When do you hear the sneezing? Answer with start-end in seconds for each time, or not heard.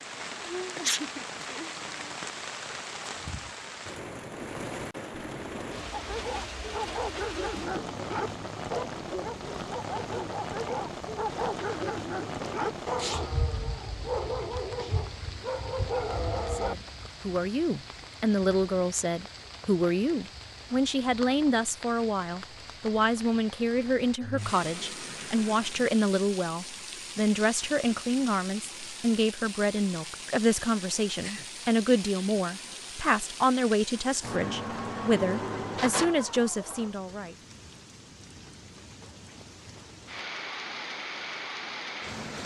0.8-1.4.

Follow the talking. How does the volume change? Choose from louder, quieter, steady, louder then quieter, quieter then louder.
steady.